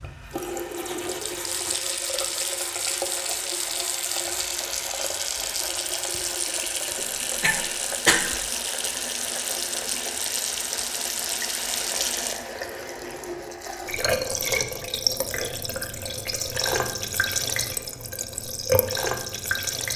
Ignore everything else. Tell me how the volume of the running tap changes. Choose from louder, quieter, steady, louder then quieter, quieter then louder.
steady.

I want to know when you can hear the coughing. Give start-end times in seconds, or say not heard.
7.0-8.3.